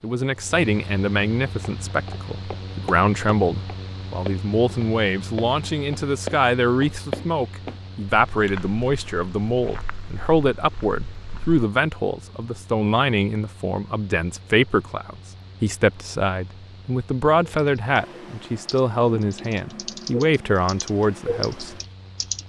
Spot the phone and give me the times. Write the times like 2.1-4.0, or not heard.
not heard.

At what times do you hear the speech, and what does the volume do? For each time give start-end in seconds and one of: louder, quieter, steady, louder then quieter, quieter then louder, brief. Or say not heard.
0.0-21.8 steady.